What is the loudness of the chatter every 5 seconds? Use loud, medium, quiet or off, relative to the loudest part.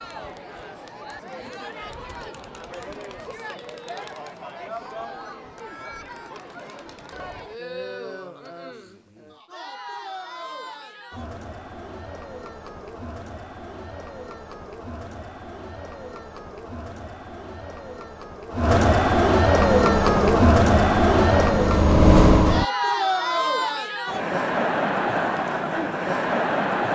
quiet, quiet, quiet, loud, loud, loud.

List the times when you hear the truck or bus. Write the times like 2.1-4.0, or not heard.
19.6-22.6.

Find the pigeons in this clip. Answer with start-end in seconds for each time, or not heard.
not heard.